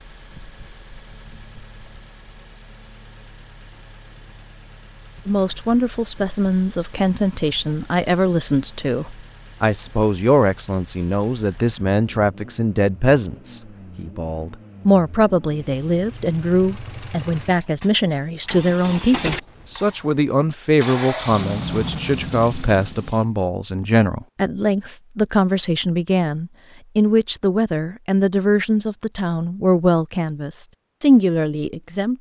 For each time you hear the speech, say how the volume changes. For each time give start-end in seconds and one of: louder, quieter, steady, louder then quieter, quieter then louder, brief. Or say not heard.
5.2-32.1 steady.